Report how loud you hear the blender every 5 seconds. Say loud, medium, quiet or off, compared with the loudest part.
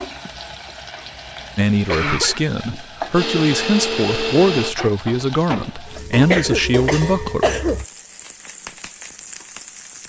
loud, off.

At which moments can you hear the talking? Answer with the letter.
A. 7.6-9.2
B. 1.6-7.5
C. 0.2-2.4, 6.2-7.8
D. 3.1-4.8
B.